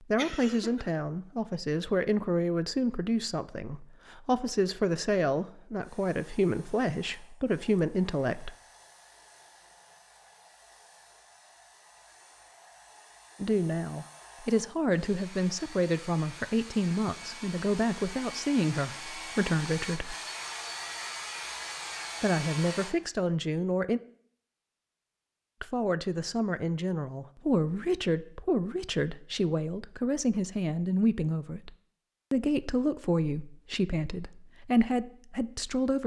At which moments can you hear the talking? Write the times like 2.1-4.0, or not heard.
0.0-8.5, 13.4-20.1, 22.2-24.0, 25.6-31.7, 32.3-36.0.